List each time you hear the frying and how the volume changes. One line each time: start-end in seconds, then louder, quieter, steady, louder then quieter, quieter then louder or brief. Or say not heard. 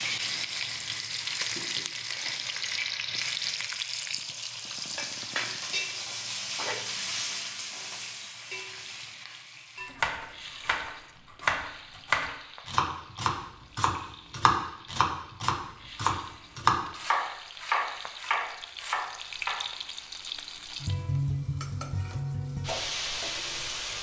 0.0-23.9 quieter then louder.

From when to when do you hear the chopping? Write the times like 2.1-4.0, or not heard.
9.8-19.6.